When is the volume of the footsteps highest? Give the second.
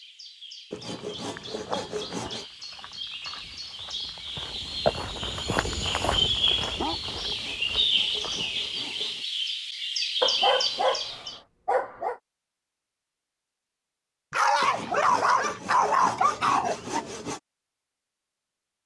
5 s.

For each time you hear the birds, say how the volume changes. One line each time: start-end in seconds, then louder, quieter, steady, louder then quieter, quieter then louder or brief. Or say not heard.
0.0-11.4 louder.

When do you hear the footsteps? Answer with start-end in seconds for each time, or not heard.
1.2-8.8.